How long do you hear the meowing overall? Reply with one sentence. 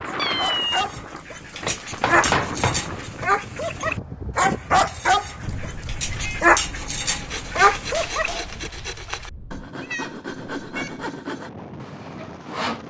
The meowing can be heard for 3 seconds in total.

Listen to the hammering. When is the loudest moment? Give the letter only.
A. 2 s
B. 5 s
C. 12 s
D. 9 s
A.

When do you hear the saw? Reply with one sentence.
The saw can be heard from 7.0 to 12.8 s.